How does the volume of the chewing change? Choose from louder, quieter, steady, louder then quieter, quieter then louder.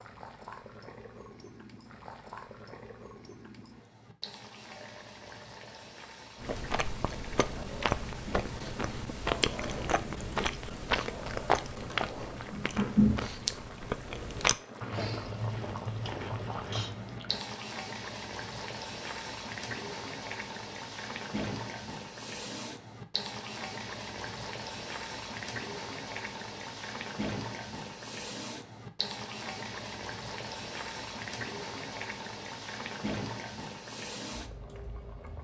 louder then quieter.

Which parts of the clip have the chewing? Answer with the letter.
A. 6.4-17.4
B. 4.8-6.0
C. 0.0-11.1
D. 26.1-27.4
A.